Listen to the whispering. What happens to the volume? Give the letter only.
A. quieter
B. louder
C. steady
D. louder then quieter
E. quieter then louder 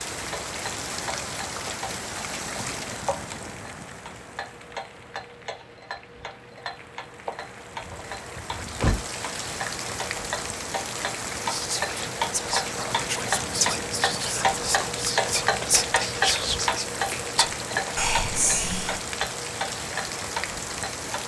B.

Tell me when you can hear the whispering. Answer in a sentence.
You can hear the whispering from 11.4 to 19.0 s.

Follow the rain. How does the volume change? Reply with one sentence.
The volume of the rain goes down, then up.